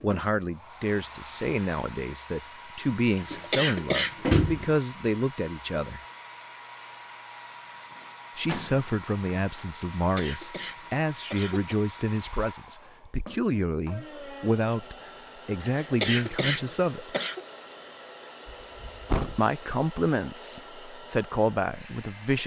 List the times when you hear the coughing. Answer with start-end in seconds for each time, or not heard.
3.1-4.2, 10.0-11.8, 15.7-17.4.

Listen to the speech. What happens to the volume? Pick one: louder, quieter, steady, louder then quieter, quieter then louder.
steady.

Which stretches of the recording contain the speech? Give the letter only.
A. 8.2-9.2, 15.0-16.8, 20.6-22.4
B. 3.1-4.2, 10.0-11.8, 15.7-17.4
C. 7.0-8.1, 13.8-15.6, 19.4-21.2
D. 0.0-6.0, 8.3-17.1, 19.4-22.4
D.